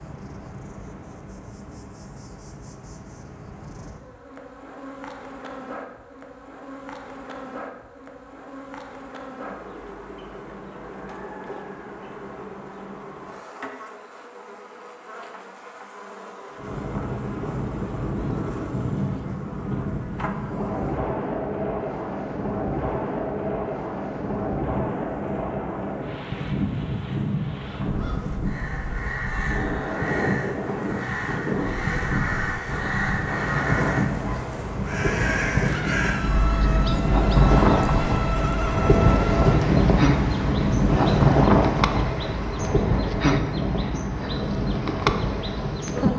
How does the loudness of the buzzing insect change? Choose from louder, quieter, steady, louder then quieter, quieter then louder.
louder.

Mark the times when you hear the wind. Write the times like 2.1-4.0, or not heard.
16.6-46.1.